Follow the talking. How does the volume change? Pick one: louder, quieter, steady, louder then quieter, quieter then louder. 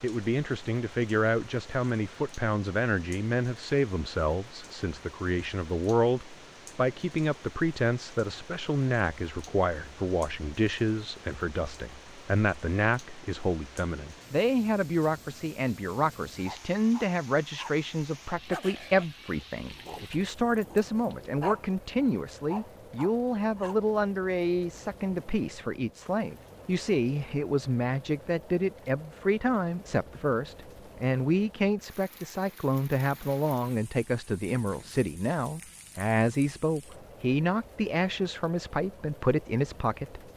steady.